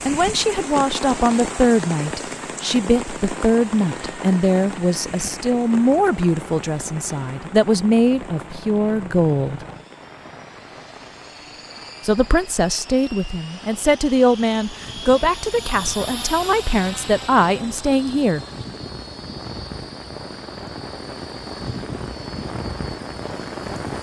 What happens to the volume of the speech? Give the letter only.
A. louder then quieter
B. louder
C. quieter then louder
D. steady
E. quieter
D.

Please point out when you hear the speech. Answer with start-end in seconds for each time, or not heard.
0.1-9.7, 12.0-18.4.